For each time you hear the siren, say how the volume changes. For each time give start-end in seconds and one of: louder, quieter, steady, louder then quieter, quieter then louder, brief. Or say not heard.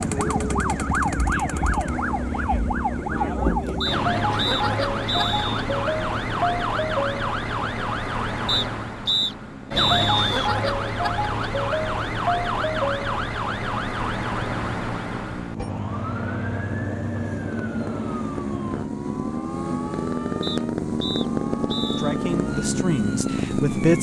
0.0-23.9 quieter.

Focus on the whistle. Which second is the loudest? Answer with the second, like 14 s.
10 s.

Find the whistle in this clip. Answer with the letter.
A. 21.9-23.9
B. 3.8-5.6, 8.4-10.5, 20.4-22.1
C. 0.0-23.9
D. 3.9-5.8
B.